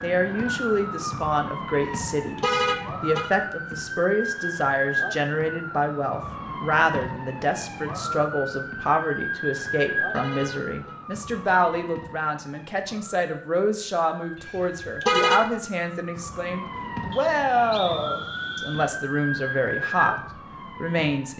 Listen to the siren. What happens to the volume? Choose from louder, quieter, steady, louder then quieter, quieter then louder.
quieter then louder.